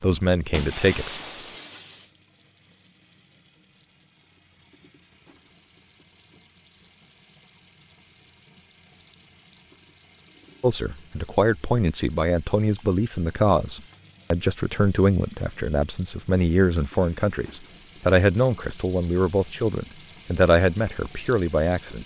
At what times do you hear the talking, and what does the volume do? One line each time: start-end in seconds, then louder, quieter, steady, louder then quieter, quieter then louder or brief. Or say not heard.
0.0-1.1 brief
10.6-22.0 steady.